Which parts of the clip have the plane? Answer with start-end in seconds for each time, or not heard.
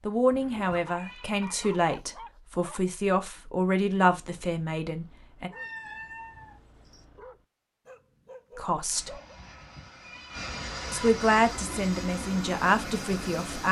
8.8-13.6.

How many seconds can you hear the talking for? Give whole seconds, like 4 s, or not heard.
9 s.